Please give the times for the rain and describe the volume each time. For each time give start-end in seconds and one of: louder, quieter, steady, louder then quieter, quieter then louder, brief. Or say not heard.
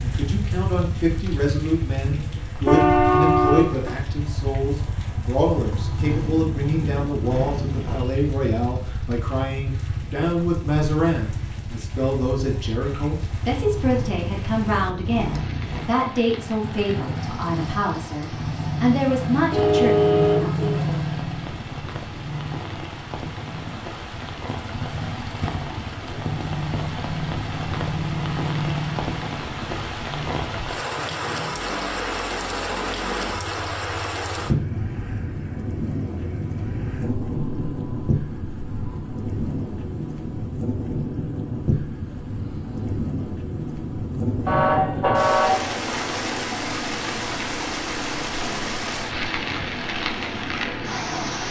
0.0-51.4 louder.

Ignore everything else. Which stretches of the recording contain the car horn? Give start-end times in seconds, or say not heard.
2.6-4.0, 19.5-20.8, 44.5-46.5.